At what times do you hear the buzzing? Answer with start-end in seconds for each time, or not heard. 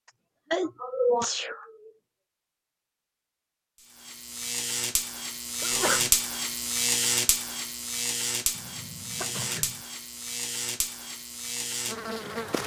3.9-12.6.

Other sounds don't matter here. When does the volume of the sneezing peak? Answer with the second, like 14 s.
1 s.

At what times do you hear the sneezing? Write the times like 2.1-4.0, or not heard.
0.5-1.9, 5.6-6.1, 8.6-9.8.